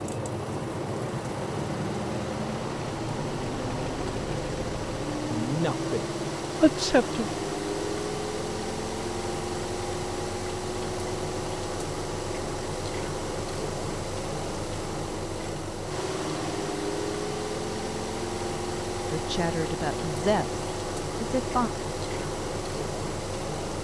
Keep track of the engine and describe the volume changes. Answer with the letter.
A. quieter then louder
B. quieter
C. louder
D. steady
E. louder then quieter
D.